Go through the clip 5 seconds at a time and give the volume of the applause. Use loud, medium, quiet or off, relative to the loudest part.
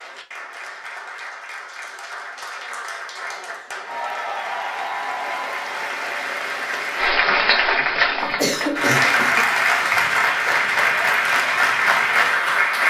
quiet, loud, loud.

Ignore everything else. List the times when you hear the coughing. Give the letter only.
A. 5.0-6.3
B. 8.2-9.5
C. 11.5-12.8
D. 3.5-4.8
B.